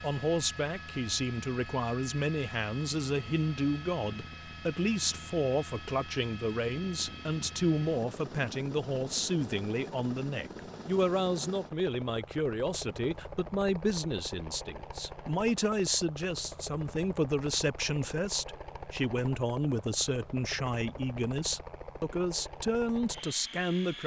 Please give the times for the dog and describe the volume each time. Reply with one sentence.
The dog can't be heard in this clip.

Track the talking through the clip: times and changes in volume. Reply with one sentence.
The talking can be heard from 0.0 to 24.0 s, at a steady volume.